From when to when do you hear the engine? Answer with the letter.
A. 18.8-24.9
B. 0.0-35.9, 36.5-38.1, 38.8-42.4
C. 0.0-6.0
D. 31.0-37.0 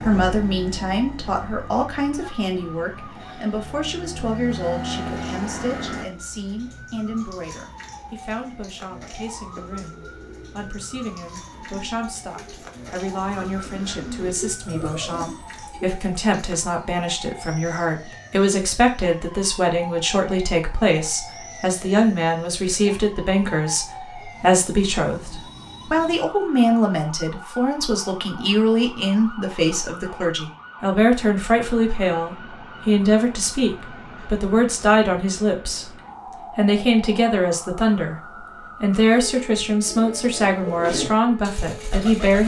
C.